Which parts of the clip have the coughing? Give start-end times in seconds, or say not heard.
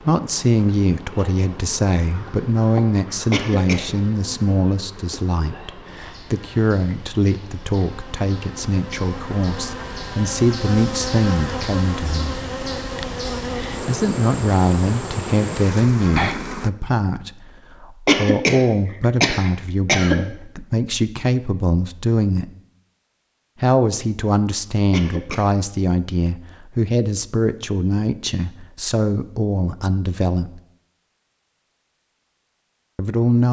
3.3-3.9, 18.1-20.2, 24.9-25.5.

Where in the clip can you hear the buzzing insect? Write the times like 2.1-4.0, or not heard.
0.0-16.7.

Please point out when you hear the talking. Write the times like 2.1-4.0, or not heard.
0.0-12.3, 13.8-22.5, 23.6-30.6, 33.0-33.4.